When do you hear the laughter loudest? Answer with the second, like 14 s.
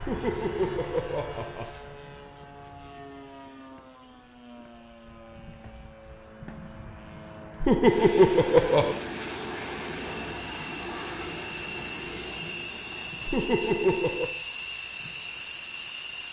8 s.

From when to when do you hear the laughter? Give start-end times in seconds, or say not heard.
0.0-1.7, 7.6-9.0, 13.2-14.3.